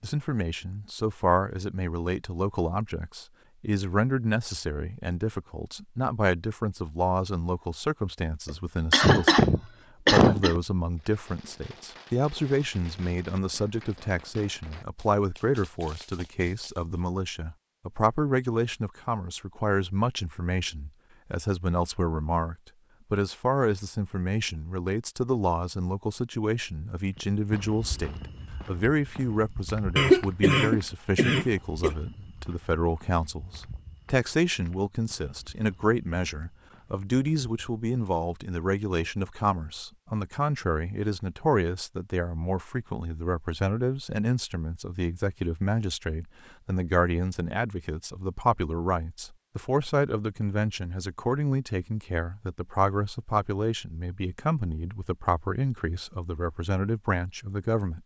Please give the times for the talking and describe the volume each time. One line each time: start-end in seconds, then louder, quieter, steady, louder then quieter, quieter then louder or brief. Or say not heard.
0.0-58.0 steady.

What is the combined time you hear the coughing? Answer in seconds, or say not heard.
4 s.